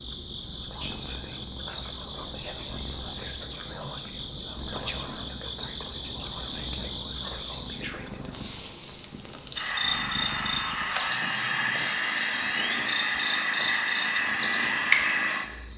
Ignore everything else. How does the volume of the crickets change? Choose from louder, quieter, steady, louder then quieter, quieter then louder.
louder.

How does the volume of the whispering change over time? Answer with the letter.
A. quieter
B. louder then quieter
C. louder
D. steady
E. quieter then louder
D.